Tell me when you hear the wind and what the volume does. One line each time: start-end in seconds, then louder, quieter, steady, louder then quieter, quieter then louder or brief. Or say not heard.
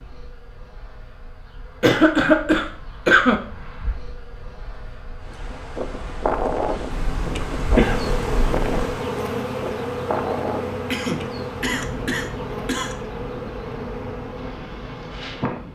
5.2-15.7 quieter.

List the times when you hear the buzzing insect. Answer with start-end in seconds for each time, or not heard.
0.0-15.7.